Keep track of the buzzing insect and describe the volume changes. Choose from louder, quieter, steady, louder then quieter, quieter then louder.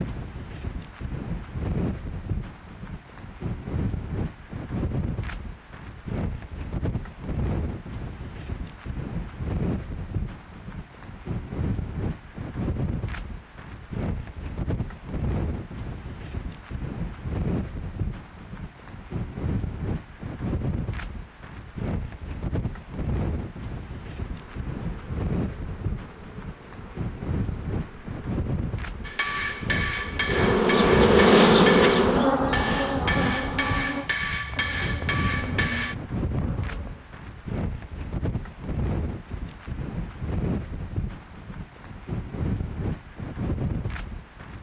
louder then quieter.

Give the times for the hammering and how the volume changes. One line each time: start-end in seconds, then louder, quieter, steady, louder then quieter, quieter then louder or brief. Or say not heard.
29.1-36.0 steady.